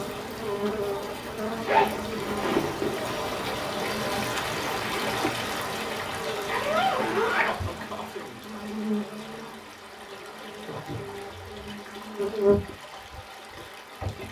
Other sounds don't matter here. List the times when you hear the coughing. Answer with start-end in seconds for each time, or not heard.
6.2-8.4.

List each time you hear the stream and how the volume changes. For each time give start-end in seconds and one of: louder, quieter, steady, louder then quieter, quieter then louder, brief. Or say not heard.
0.0-14.2 louder then quieter.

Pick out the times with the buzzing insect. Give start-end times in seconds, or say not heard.
0.0-14.2.